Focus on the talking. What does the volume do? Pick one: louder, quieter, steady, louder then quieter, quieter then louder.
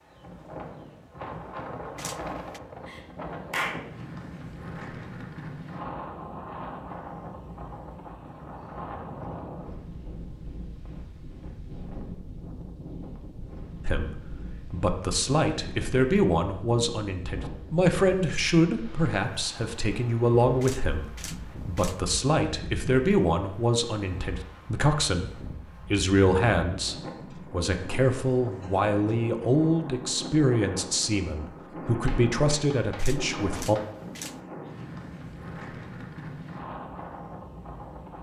steady.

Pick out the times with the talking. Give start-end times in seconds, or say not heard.
13.8-33.8.